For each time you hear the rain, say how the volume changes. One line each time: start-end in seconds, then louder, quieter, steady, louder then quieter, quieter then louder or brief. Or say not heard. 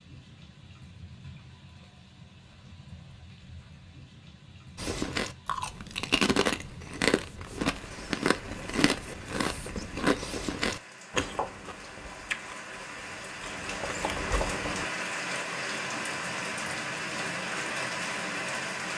0.0-18.9 louder.